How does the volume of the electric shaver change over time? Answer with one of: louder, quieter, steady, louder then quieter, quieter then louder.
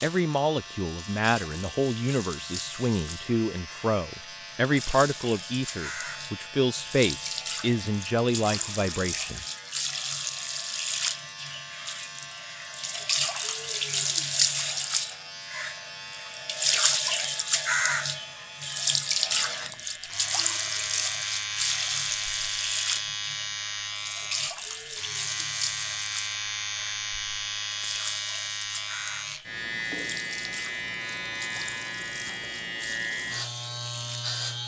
louder.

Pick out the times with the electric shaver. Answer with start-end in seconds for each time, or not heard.
0.0-34.6.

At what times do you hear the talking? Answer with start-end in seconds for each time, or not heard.
0.0-9.4.